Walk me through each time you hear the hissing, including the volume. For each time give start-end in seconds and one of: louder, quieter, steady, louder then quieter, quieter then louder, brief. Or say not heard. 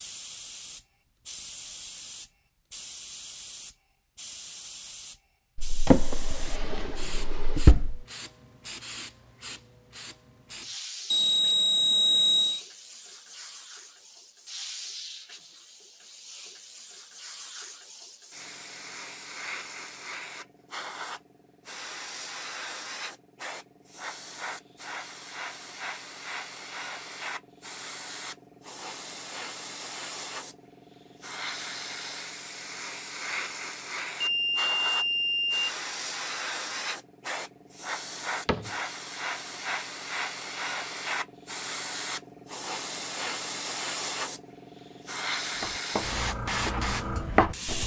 0.0-47.8 louder.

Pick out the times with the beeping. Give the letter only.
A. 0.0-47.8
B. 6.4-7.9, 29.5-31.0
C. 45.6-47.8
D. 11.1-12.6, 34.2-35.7
D.